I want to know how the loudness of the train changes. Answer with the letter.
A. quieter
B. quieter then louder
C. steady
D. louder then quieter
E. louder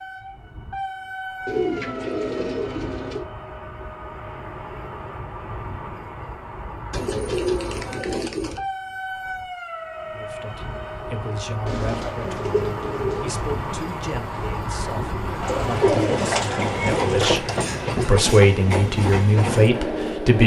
E.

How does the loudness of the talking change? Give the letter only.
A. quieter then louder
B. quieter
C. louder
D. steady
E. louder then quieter
C.